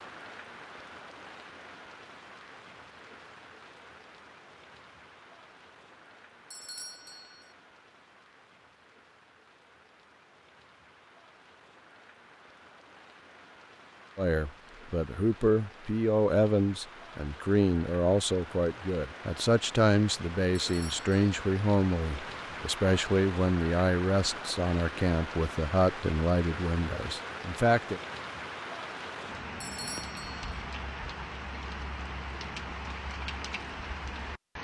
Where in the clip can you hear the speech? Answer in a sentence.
You can hear the speech from 14.2 to 28.0 s.